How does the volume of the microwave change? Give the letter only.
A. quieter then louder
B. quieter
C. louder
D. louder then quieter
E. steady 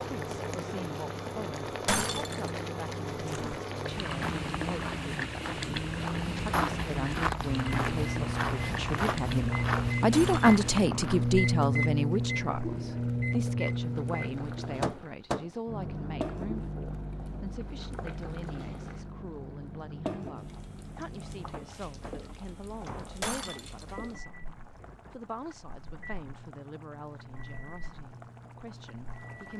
D.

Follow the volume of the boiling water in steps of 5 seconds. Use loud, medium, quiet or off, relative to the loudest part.
loud, loud, medium, medium, medium, quiet.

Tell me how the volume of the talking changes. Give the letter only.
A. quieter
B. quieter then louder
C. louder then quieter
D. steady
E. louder
C.